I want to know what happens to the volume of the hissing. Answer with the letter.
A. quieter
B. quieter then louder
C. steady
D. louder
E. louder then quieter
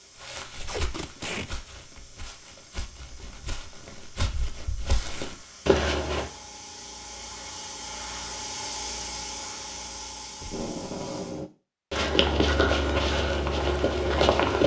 D.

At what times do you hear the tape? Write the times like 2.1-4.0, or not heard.
0.6-1.5, 10.4-11.5.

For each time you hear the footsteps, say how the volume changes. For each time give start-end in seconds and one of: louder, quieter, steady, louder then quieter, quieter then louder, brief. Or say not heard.
0.2-6.2 quieter then louder
11.9-14.6 brief.